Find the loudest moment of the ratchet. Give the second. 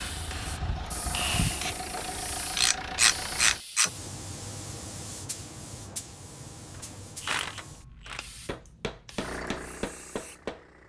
3 s.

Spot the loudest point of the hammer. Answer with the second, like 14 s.
1 s.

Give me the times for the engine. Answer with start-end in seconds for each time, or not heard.
0.0-3.6, 9.2-10.8.